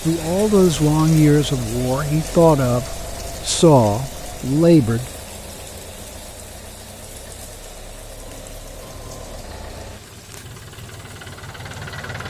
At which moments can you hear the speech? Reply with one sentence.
You can hear the speech from 0.1 to 5.0 s.